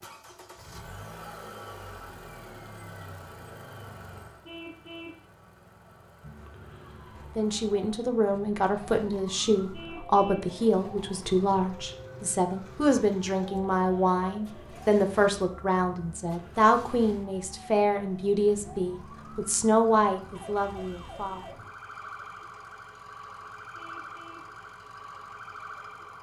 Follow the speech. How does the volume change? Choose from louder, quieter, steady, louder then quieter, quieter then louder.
steady.